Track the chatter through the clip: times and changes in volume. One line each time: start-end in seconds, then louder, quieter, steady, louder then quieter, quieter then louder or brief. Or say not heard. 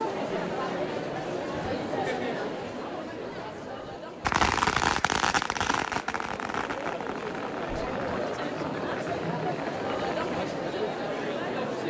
0.0-11.8 quieter then louder.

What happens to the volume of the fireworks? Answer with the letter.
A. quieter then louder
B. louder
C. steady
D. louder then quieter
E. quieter
E.